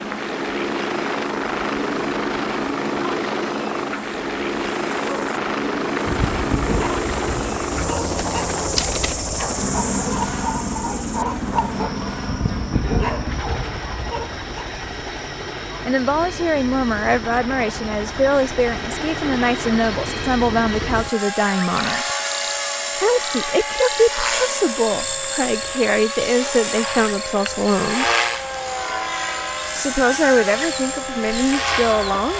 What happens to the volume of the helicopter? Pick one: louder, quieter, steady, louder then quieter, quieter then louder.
quieter then louder.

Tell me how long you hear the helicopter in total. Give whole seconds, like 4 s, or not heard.
32 s.